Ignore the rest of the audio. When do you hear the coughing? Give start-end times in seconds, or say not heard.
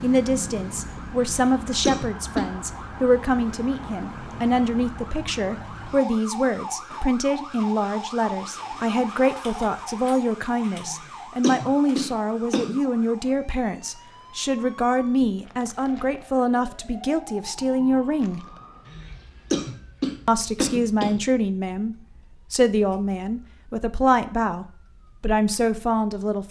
1.2-2.5, 10.8-12.8, 18.9-21.2.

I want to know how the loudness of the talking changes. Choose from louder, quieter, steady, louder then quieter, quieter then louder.
steady.